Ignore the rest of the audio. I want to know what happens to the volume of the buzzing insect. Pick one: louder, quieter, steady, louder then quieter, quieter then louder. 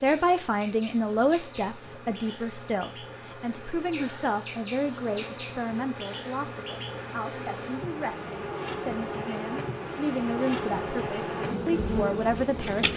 louder.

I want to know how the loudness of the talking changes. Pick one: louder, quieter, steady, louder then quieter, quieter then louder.
quieter then louder.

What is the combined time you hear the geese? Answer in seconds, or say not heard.
not heard.